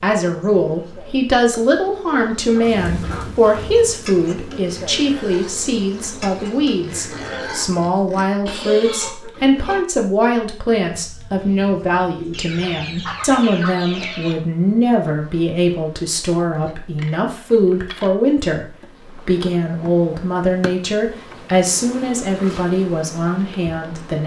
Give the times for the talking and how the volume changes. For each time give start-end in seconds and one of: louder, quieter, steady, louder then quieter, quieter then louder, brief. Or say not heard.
0.0-24.2 steady.